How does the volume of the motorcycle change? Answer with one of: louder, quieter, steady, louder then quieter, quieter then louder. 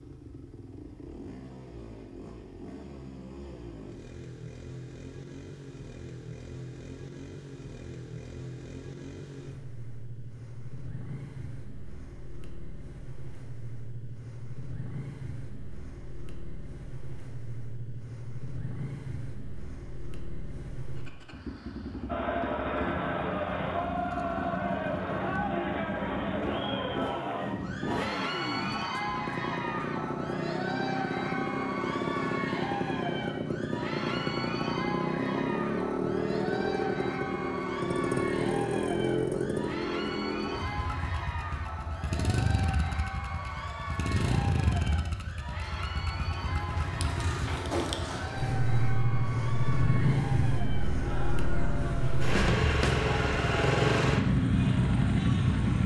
louder.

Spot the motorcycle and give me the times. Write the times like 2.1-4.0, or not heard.
0.0-55.8.